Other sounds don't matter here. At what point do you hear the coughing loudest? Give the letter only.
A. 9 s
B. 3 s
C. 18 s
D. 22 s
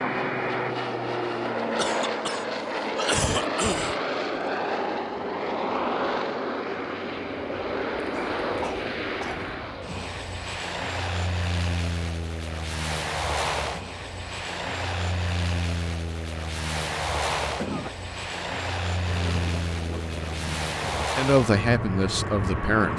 B.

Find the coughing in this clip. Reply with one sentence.
The coughing can be heard from 1.8 to 4.0 s, from 8.0 to 9.6 s and from 17.4 to 17.9 s.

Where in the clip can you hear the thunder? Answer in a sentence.
The thunder can be heard from 19.1 to 21.1 s.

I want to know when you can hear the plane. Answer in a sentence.
You can hear the plane from 0.0 to 22.9 s.